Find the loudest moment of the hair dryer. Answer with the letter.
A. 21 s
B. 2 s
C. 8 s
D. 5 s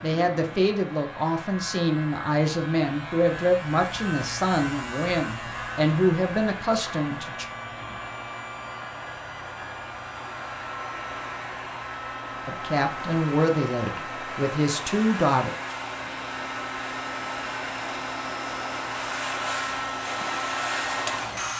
A.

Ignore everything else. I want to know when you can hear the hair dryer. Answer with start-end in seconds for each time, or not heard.
0.0-21.5.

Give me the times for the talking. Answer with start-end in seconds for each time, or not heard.
0.0-7.5, 12.4-15.5.